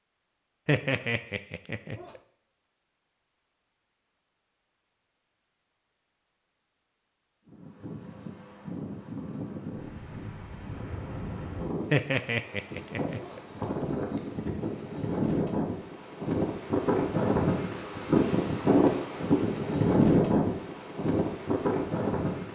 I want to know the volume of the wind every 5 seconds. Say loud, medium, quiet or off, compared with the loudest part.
off, quiet, medium, loud, loud.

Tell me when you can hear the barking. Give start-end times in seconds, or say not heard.
0.7-2.2, 11.9-13.6.